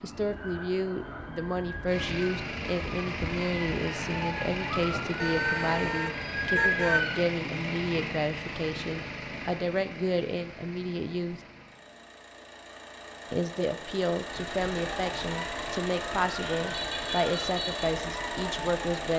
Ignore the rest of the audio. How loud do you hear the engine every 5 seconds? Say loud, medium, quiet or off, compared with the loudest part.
loud, loud, medium, loud.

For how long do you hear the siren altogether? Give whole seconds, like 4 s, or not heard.
12 s.